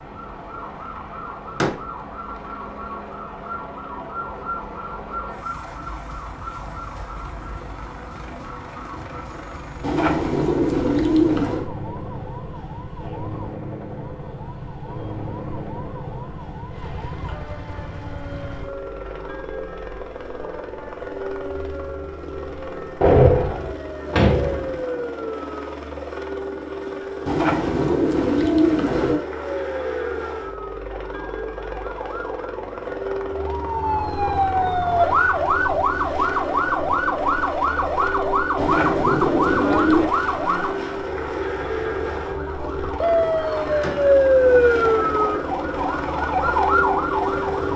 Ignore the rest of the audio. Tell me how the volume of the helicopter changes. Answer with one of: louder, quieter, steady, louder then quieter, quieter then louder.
louder.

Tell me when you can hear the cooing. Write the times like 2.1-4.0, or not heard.
9.8-11.7, 27.2-29.2, 38.5-40.1.